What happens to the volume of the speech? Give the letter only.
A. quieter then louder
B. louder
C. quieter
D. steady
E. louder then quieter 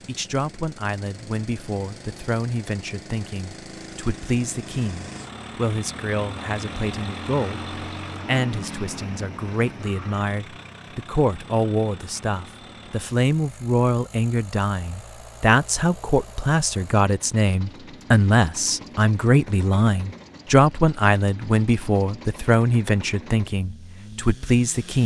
B.